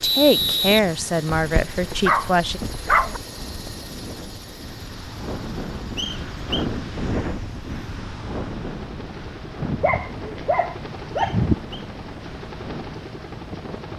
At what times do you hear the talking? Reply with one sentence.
You can hear the talking from 0.0 to 2.6 s.